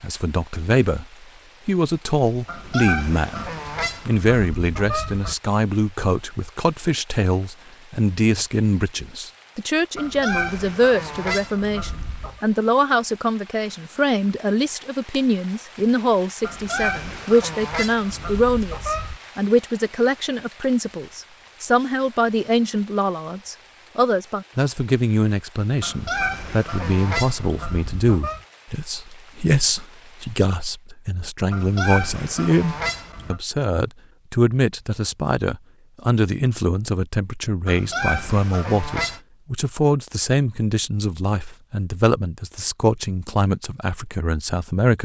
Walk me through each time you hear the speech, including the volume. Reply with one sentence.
You can hear the speech briefly from 0.0 to 1.1 s; and from 1.6 to 45.0 s, at a steady volume.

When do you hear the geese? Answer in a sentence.
You can hear the geese from 2.5 to 5.3 s, from 9.9 to 12.4 s, from 16.4 to 19.2 s, from 25.8 to 28.4 s, from 31.5 to 33.4 s and from 37.6 to 39.2 s.